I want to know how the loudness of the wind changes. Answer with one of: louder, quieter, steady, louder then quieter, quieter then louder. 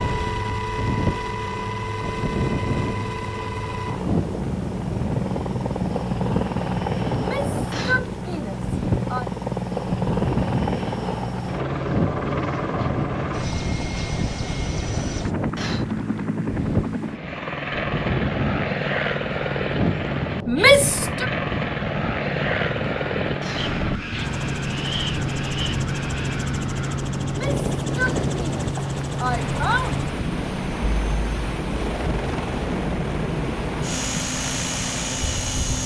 steady.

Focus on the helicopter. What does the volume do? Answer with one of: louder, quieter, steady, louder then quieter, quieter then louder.
steady.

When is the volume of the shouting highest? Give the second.
21 s.